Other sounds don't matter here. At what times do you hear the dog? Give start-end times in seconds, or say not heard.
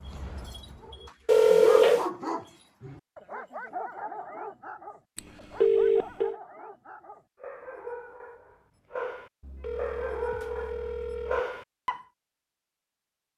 0.0-12.1.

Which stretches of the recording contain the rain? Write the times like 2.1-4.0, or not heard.
not heard.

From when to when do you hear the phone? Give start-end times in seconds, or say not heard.
1.2-2.0, 5.2-6.3, 9.4-11.4.